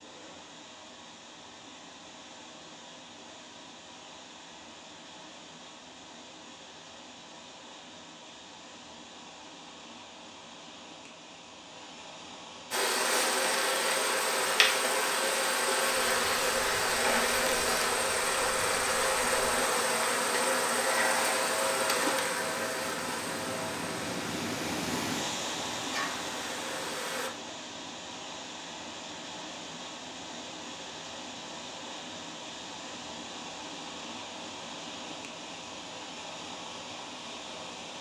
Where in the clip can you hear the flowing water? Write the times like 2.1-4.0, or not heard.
0.0-37.9.